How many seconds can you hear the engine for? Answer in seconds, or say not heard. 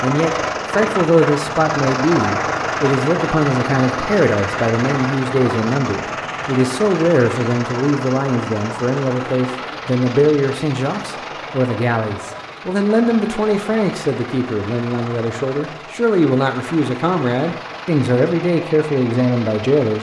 20 s.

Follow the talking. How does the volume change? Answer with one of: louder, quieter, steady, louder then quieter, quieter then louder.
steady.